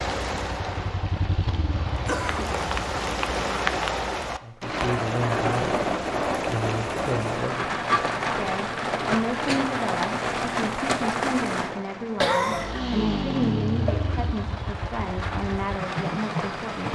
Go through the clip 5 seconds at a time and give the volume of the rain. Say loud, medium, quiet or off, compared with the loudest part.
loud, loud, loud, medium.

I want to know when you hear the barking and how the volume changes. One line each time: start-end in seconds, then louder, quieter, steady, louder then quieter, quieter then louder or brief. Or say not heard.
not heard.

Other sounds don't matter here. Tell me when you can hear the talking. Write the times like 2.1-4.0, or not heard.
4.4-5.8, 6.5-16.9.